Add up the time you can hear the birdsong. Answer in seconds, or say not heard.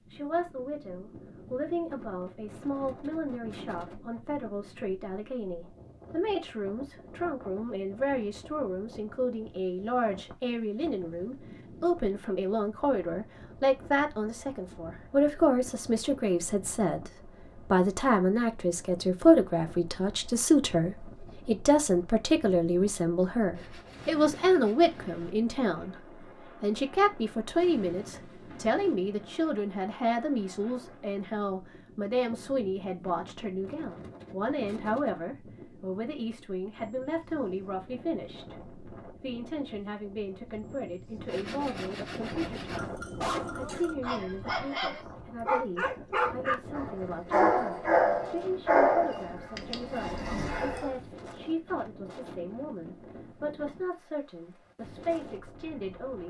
not heard.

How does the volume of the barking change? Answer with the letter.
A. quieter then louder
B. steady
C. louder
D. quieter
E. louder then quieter
E.